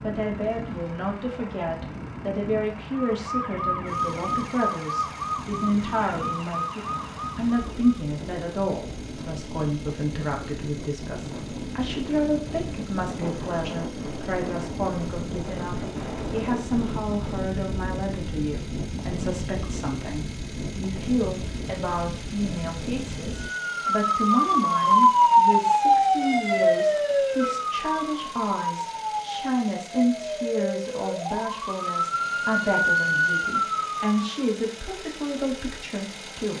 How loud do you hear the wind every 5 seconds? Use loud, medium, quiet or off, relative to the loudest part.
medium, medium, loud, loud, loud, off, off, off.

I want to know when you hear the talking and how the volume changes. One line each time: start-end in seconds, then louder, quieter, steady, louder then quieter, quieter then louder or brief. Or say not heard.
0.0-36.5 steady.